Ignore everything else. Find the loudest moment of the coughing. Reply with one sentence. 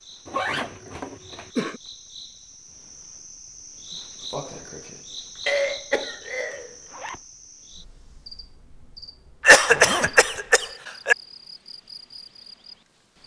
The loudest moment of the coughing is at 10 seconds.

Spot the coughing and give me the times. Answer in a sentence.
You can hear the coughing from 0.8 to 1.8 s, from 5.5 to 6.8 s and from 9.4 to 11.2 s.